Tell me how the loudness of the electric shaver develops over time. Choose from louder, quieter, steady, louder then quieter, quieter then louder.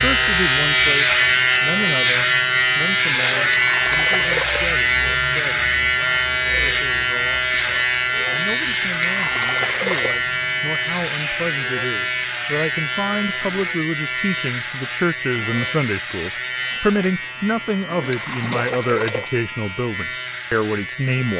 quieter.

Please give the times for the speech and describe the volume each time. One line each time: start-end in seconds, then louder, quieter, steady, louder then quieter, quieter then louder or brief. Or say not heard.
0.0-21.3 quieter then louder.